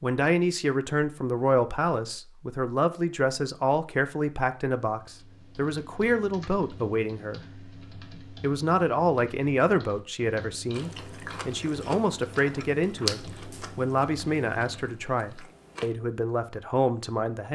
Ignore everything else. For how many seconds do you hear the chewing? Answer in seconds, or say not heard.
5 s.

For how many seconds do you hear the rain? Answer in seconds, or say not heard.
not heard.